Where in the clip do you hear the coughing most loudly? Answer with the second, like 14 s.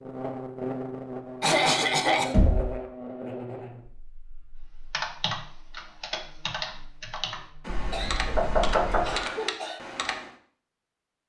2 s.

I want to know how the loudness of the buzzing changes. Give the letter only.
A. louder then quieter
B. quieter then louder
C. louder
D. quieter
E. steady
B.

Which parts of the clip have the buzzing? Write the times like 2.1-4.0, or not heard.
0.0-7.7.